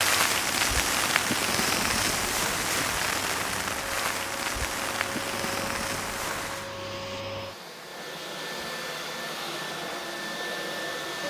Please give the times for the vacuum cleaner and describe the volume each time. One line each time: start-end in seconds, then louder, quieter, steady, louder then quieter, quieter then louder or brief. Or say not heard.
0.2-11.2 louder.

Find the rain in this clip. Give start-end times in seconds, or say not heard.
0.0-6.7.